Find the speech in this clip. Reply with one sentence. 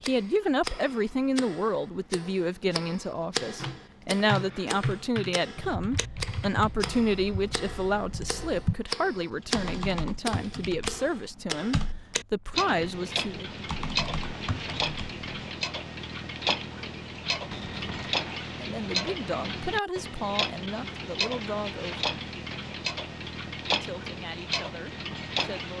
You can hear the speech from 0.0 to 13.4 s, from 18.6 to 22.1 s and from 23.8 to 25.7 s.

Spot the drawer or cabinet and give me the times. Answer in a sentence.
The drawer or cabinet can be heard from 17.5 to 18.2 s.